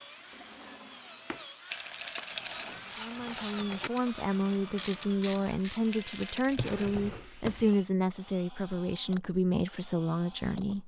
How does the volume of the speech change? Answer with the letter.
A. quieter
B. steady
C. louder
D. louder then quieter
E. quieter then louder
B.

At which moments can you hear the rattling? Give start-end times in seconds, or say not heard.
1.7-2.8, 5.9-7.0.